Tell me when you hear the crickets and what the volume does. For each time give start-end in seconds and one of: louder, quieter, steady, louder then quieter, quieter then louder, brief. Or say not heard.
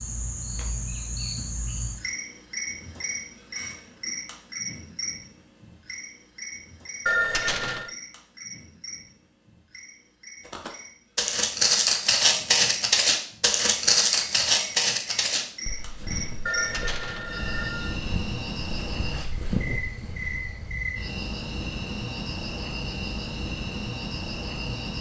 0.0-24.9 quieter then louder.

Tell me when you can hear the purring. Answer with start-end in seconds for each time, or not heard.
not heard.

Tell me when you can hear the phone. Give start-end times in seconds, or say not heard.
7.0-8.0, 16.4-18.0.